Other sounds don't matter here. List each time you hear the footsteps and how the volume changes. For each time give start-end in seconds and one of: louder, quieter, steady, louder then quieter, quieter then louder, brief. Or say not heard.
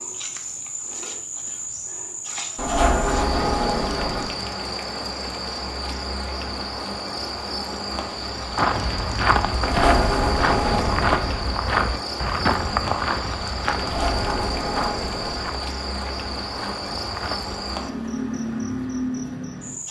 8.5-17.6 quieter.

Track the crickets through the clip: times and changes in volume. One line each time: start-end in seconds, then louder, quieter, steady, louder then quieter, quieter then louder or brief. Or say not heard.
0.0-19.8 steady.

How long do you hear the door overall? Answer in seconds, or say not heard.
5 s.